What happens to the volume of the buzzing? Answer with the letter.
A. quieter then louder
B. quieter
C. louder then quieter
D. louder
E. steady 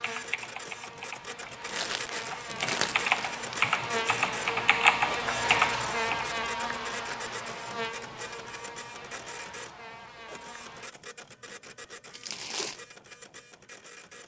C.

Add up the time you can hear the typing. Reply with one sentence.
The typing can be heard for 6 seconds in total.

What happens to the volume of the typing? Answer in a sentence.
The volume of the typing goes up.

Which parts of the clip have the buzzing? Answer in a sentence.
The buzzing can be heard from 0.0 to 10.9 s.